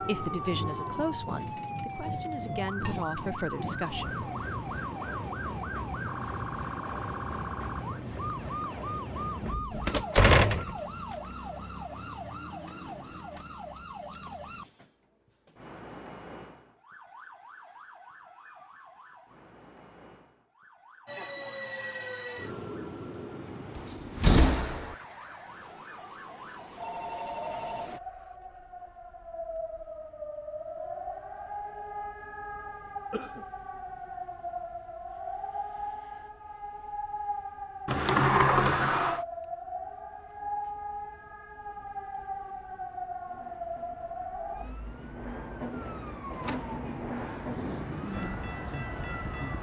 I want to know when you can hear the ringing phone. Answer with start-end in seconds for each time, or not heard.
26.8-27.9.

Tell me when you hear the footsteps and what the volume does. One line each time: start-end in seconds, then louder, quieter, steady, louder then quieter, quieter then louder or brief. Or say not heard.
not heard.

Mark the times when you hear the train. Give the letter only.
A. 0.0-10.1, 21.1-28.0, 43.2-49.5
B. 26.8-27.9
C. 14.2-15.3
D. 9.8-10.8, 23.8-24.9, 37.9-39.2
A.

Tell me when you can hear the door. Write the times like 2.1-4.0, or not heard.
9.8-10.8, 23.8-24.9, 37.9-39.2.